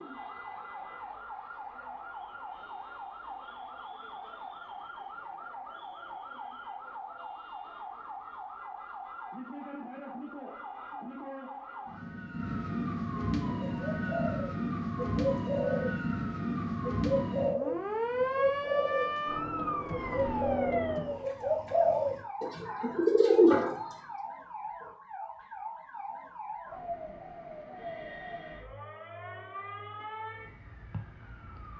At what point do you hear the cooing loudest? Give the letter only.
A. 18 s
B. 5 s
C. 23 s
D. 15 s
C.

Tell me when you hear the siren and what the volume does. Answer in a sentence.
You can hear the siren from 0.0 to 31.7 s, getting louder then quieter.